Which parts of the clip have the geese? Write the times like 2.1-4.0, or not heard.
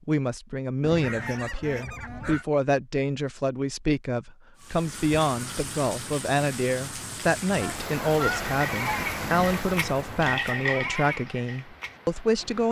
0.8-2.5, 7.5-10.3.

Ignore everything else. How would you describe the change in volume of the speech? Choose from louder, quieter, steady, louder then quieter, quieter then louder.
steady.